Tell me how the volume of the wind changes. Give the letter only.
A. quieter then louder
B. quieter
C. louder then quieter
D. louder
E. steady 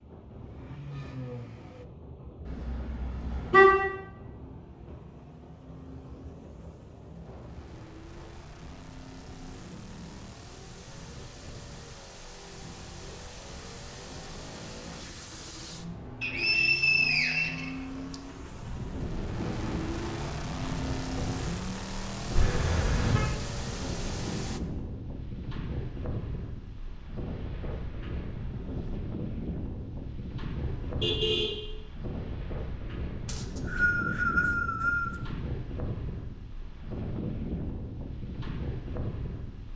D.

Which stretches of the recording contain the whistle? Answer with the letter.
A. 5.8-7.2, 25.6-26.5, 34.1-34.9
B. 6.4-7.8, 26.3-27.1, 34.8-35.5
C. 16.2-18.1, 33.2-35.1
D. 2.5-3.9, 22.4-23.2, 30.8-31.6
C.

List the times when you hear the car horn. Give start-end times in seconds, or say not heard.
2.5-3.9, 22.4-23.2, 30.8-31.6.